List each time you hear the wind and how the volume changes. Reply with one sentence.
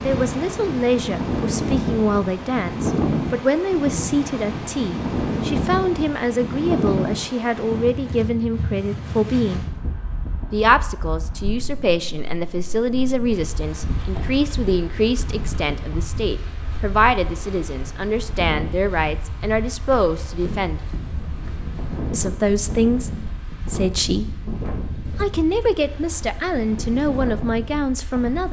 You can hear the wind from 0.0 to 28.4 s, getting quieter.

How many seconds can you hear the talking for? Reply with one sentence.
The talking can be heard for 26 seconds in total.